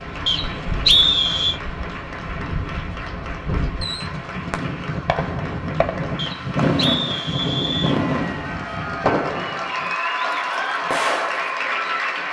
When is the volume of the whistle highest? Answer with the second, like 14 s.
1 s.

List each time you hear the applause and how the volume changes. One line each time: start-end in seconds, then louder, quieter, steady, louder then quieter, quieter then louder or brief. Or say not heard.
0.0-12.2 louder.